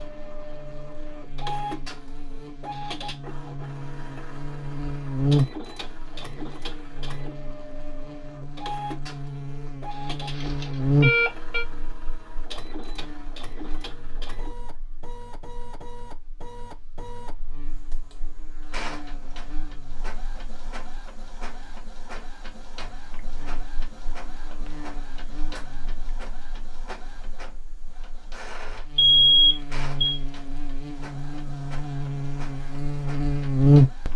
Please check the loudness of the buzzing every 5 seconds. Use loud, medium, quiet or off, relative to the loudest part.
quiet, medium, medium, quiet, quiet, quiet, loud.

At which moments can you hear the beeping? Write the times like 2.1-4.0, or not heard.
10.3-11.7, 28.9-30.2.